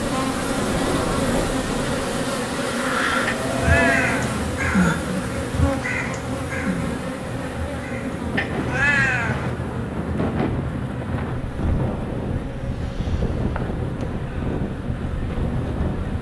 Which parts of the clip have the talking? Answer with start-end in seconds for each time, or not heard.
not heard.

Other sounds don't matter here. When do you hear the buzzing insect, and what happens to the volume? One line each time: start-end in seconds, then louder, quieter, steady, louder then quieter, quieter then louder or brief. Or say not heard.
0.0-16.1 quieter.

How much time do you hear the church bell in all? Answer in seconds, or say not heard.
not heard.